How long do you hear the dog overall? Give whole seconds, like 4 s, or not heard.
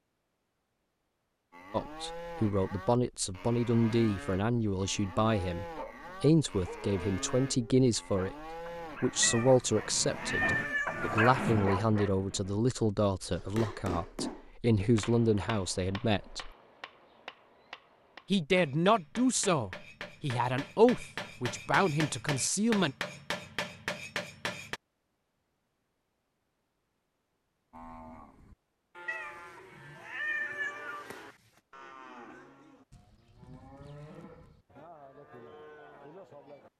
7 s.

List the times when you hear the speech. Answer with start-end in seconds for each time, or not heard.
1.7-8.3, 9.0-16.5, 18.3-22.9.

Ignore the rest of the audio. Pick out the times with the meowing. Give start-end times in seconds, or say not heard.
9.2-11.2, 29.1-31.4.